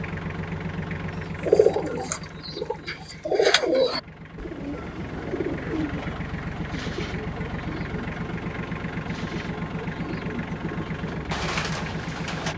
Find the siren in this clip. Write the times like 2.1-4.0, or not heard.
not heard.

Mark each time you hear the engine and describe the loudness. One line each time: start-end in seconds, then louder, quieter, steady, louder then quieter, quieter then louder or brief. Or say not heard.
0.0-12.5 quieter then louder.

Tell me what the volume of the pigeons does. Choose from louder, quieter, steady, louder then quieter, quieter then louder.
quieter then louder.